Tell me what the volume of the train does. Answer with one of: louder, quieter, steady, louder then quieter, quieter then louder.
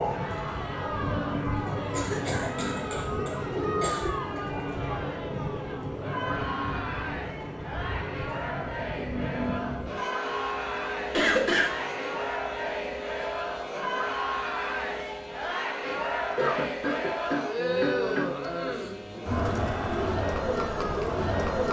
quieter.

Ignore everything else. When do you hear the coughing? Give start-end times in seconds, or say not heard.
1.9-4.1, 11.1-12.1, 16.4-18.8.